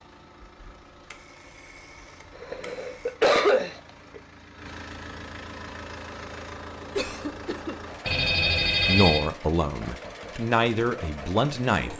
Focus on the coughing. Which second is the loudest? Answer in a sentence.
The volume of the coughing peaks at 3 seconds.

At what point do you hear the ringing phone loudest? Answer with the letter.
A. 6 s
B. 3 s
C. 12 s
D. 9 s
D.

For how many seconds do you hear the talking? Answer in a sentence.
You can hear the talking for 3 seconds altogether.